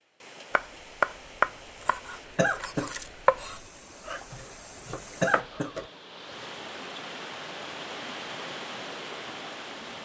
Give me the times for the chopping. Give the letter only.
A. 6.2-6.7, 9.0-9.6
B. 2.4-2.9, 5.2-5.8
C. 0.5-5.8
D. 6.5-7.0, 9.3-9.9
C.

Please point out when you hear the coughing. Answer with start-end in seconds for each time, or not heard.
2.4-2.9, 5.2-5.8.